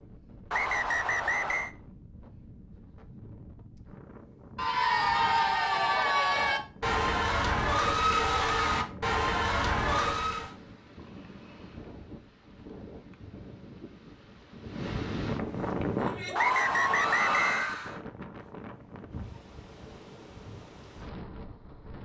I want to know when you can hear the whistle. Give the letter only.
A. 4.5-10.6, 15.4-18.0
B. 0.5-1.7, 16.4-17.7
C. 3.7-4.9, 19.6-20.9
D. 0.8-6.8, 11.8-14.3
B.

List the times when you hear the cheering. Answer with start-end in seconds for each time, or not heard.
4.5-10.6, 15.4-18.0.